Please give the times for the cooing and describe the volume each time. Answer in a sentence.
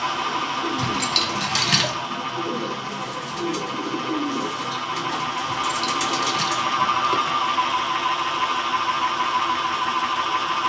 The cooing can be heard from 0.0 to 6.7 s, at a steady volume.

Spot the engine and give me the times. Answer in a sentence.
You can hear the engine from 0.0 to 10.6 s.